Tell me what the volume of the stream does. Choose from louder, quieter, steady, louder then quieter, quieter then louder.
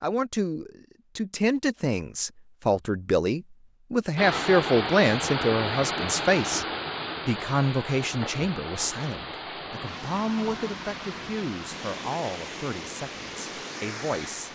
quieter.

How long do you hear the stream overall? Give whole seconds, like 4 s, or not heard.
10 s.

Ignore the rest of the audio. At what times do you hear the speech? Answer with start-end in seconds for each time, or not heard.
0.0-6.7, 7.2-14.4.